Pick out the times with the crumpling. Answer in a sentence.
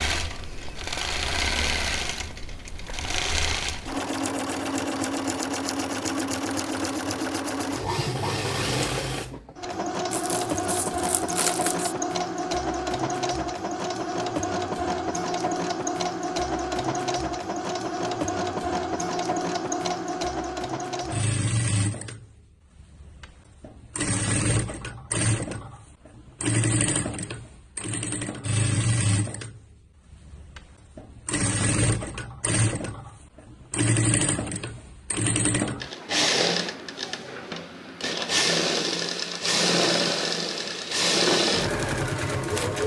You can hear the crumpling from 10.1 to 11.9 s.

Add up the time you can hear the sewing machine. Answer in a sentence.
You can hear the sewing machine for 43 seconds altogether.